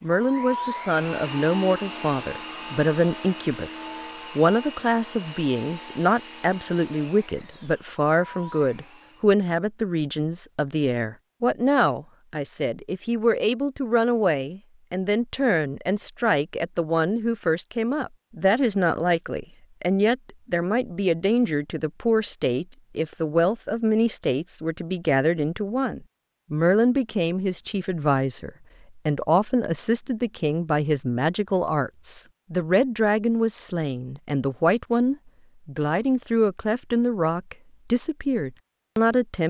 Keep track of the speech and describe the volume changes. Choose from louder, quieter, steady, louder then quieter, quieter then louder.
steady.